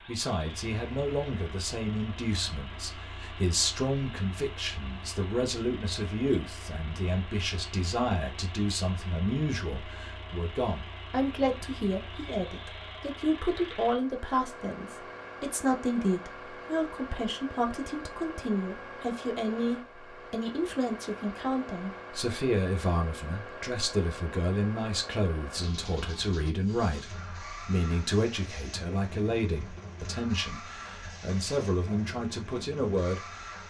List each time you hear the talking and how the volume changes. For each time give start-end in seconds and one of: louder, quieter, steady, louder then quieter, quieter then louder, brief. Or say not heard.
0.1-33.5 steady.